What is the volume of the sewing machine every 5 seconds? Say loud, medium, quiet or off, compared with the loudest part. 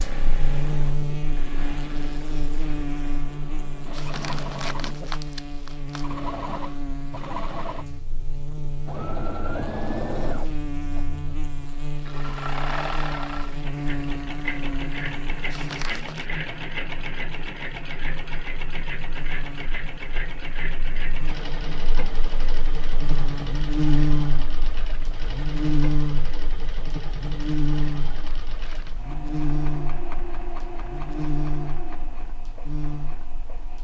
medium, loud, loud, loud, loud, medium, medium.